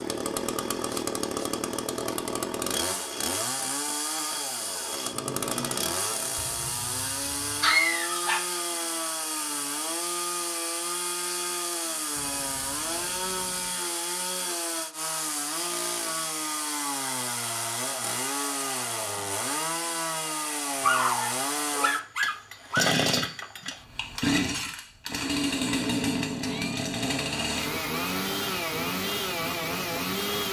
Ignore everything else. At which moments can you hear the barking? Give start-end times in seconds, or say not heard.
6.5-8.6, 20.8-22.9.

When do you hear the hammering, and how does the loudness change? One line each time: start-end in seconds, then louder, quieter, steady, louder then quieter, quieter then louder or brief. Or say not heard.
not heard.